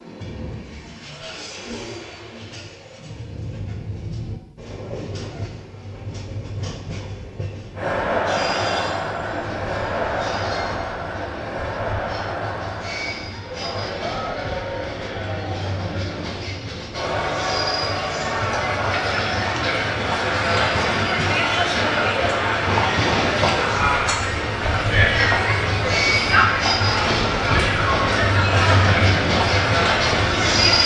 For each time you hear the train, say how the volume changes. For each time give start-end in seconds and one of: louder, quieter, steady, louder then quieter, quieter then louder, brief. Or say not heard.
0.0-30.8 louder.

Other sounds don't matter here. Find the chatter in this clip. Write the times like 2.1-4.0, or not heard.
7.8-30.8.